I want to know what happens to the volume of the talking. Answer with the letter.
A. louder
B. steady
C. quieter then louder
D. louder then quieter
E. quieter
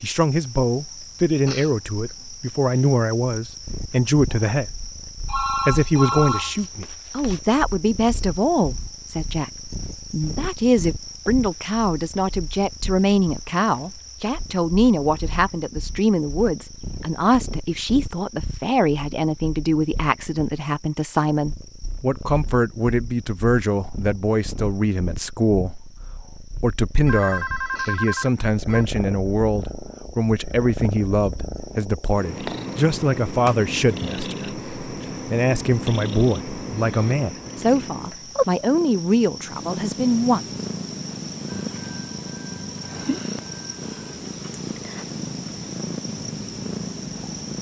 B.